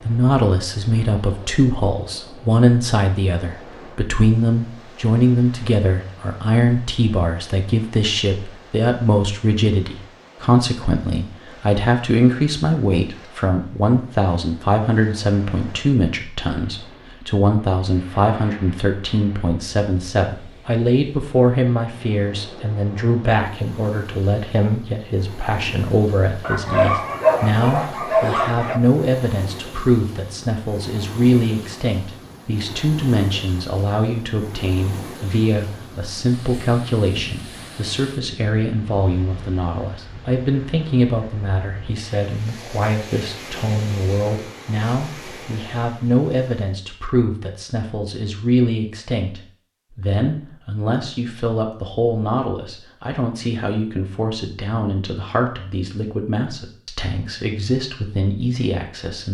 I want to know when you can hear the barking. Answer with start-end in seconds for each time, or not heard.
26.4-28.8.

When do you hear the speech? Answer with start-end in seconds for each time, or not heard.
0.1-59.2.